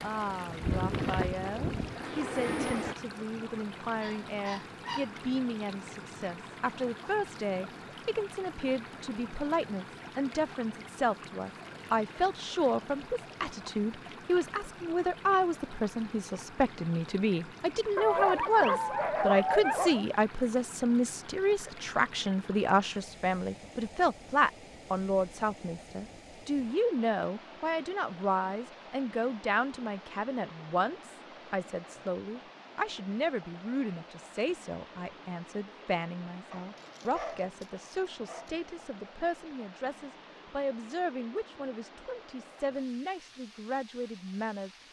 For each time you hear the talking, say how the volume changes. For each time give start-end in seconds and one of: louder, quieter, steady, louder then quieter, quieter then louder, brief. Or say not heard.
0.0-44.7 louder then quieter.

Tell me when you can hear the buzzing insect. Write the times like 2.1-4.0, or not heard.
0.0-3.0.